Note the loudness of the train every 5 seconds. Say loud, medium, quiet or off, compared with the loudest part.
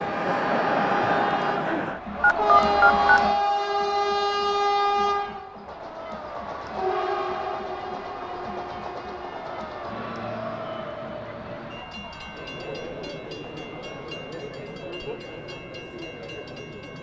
loud, medium, quiet, quiet.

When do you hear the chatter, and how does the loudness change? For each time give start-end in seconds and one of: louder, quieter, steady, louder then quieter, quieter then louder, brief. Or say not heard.
0.0-16.9 quieter.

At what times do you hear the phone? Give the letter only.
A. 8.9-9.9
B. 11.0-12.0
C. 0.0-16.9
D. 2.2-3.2
D.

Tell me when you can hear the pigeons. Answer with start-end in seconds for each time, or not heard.
not heard.